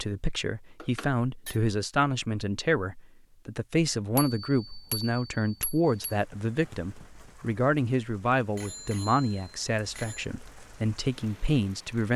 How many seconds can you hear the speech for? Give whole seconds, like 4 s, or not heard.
12 s.